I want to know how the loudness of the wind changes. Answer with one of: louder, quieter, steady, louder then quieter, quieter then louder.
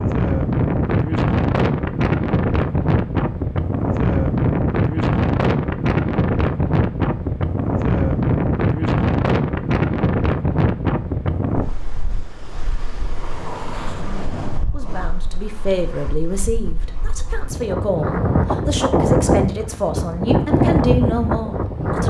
quieter then louder.